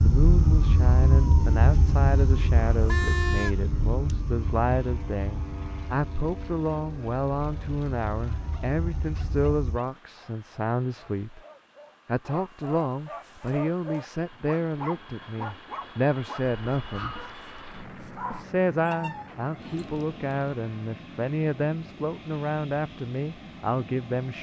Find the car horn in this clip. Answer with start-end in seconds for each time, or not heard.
2.7-3.5.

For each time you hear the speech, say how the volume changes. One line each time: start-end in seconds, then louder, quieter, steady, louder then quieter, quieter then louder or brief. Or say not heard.
0.0-11.4 steady
12.1-17.1 quieter then louder
18.3-24.3 steady.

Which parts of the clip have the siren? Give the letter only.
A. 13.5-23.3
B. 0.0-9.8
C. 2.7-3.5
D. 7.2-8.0
B.